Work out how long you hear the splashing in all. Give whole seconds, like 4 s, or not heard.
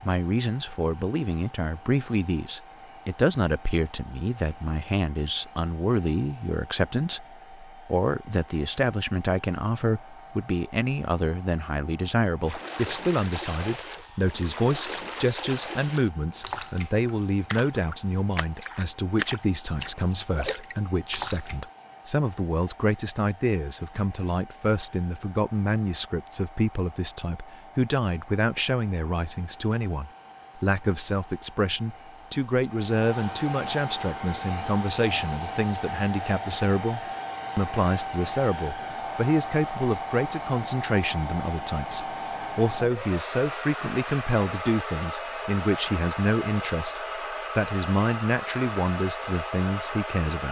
9 s.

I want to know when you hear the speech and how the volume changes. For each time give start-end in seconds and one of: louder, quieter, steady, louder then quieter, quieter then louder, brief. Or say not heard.
0.0-50.4 steady.